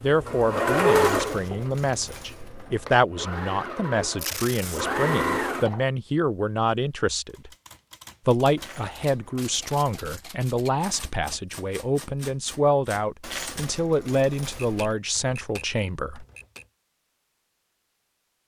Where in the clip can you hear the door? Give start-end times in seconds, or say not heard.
not heard.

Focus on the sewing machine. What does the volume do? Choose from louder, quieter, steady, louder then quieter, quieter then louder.
quieter then louder.